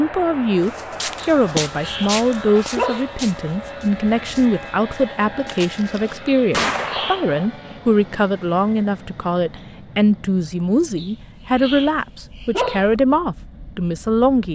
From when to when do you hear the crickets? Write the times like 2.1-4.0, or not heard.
not heard.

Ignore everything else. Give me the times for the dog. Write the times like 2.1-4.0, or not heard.
1.2-3.2, 6.2-7.8, 10.9-12.9.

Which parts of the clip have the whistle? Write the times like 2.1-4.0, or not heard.
not heard.